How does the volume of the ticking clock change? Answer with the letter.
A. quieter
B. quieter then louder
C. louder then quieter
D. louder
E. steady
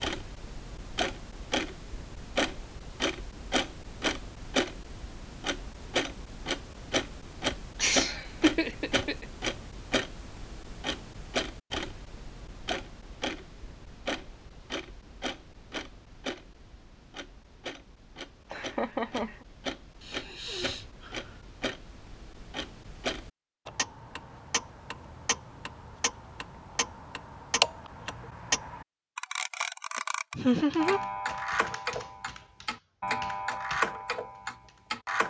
B.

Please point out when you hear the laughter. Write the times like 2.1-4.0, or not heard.
7.8-9.2, 18.5-19.4, 30.4-31.0.